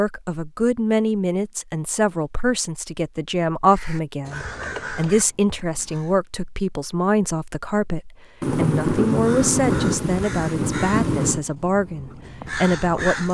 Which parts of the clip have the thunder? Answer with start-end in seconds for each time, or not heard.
8.4-11.4.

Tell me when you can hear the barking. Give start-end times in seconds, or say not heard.
not heard.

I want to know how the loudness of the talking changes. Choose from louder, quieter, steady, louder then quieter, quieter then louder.
steady.